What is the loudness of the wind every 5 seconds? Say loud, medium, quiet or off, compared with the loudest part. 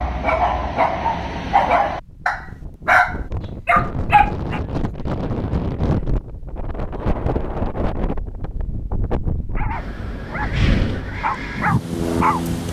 medium, loud, loud.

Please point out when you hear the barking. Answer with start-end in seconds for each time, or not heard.
0.0-4.6, 9.5-12.5.